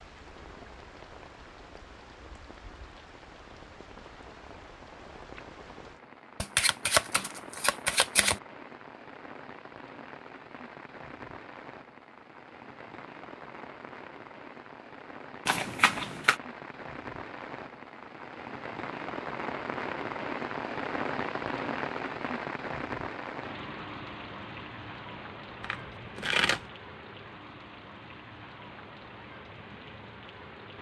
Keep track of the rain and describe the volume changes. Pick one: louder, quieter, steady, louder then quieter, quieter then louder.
louder then quieter.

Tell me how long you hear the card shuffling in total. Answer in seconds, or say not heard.
4 s.